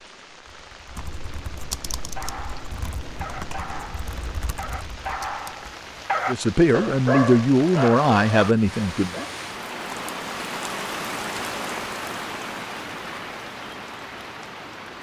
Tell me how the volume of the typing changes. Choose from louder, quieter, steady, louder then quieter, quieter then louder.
louder then quieter.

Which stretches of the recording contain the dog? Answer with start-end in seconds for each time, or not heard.
1.9-9.3.